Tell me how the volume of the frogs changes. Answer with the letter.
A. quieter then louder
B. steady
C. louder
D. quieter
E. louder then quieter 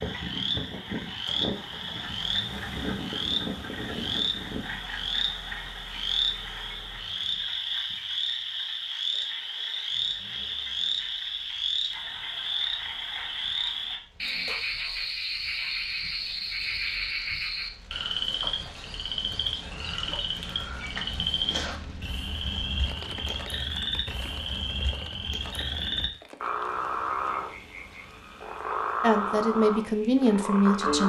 B.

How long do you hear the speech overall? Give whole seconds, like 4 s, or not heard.
2 s.